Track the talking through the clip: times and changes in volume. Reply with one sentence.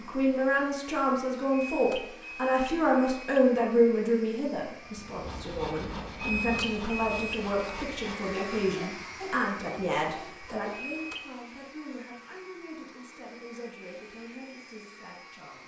The talking can be heard from 0.0 to 15.6 s, getting quieter.